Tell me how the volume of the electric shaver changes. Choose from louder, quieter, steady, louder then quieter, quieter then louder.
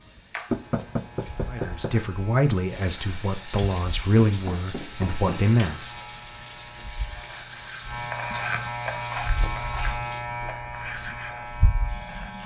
louder.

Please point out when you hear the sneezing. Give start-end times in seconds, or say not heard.
not heard.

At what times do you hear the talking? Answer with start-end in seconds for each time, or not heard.
1.5-5.9.